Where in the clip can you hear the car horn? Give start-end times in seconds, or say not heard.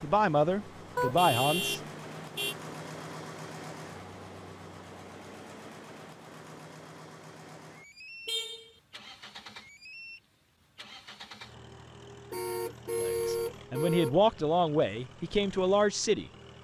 0.9-2.5, 8.2-8.7, 12.3-14.2.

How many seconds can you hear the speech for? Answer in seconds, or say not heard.
5 s.